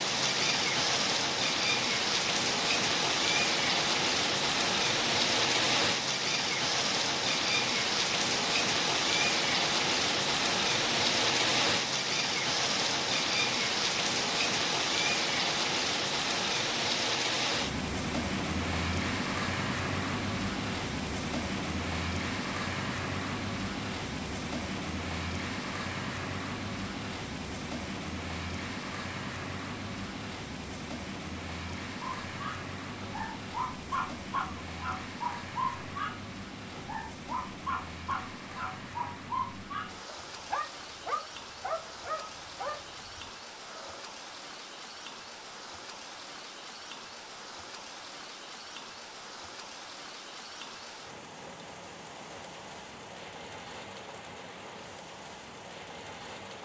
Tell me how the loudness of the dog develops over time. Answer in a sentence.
The volume of the dog stays about the same.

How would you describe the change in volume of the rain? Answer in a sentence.
The loudness of the rain goes down.